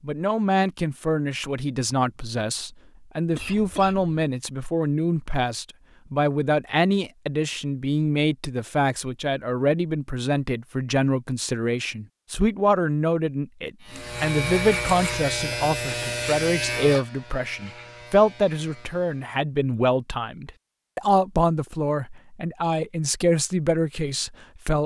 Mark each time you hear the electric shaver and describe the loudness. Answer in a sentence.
You can hear the electric shaver from 13.8 to 19.4 s, getting quieter.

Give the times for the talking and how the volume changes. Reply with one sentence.
You can hear the talking from 0.0 to 24.8 s, at a steady volume.